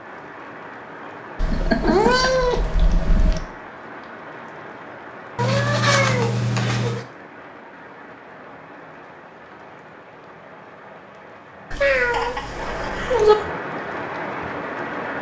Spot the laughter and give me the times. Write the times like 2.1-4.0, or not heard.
1.4-2.3, 11.5-13.3.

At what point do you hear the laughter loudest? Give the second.
2 s.